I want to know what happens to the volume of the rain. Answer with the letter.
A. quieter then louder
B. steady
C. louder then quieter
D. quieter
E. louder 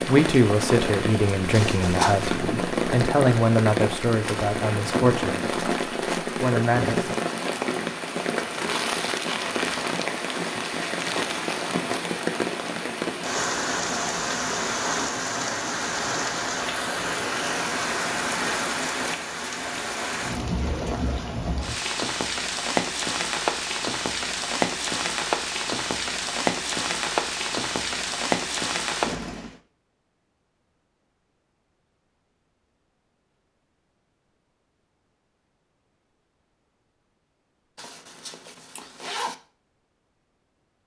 B.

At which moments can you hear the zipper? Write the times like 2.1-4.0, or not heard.
1.5-2.4, 37.8-39.4.